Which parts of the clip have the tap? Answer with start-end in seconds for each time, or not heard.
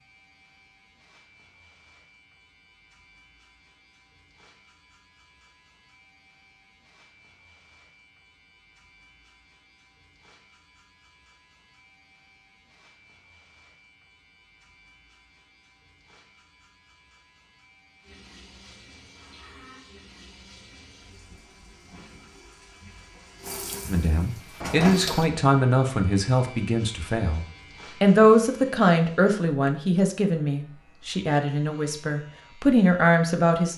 18.0-25.3.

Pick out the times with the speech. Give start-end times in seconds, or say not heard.
23.9-33.7.